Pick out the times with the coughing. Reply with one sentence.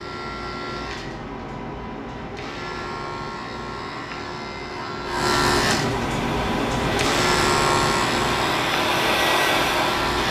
The coughing can't be heard in this clip.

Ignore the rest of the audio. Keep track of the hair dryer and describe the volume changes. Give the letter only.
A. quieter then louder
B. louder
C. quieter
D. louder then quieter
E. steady
B.